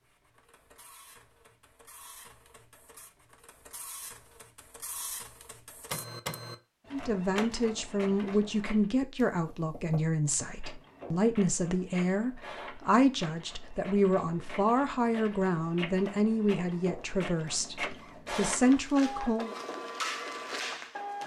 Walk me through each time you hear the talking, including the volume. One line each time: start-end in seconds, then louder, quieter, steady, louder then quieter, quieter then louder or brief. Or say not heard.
6.9-19.5 steady.